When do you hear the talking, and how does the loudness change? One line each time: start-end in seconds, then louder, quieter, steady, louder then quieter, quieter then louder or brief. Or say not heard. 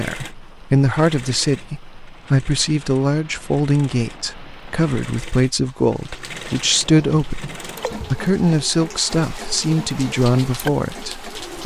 0.0-11.6 steady.